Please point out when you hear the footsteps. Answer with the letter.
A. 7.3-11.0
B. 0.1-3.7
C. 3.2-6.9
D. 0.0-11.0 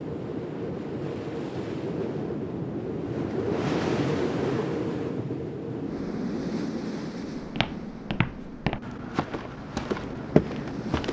A.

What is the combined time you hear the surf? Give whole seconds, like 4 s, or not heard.
11 s.